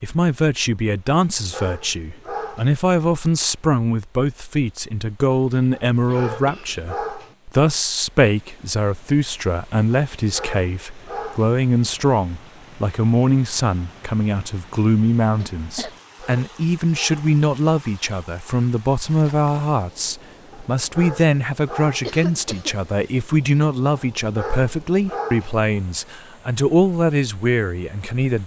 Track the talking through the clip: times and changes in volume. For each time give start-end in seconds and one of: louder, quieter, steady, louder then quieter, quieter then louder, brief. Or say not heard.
0.0-28.4 steady.